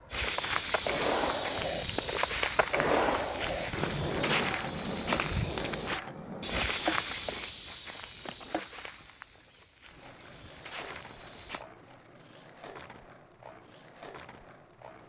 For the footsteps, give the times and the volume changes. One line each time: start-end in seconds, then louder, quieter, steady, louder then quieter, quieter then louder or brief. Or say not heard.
0.1-11.7 quieter.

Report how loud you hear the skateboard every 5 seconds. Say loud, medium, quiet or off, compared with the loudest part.
loud, medium, quiet.